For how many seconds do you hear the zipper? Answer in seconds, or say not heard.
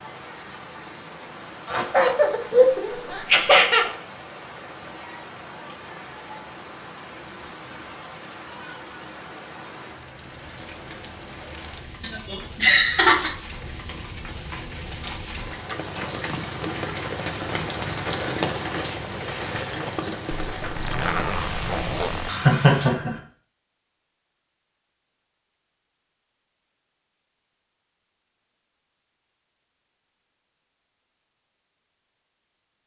2 s.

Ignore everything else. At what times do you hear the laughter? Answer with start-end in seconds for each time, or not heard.
1.6-3.9, 12.0-13.3, 22.2-23.1.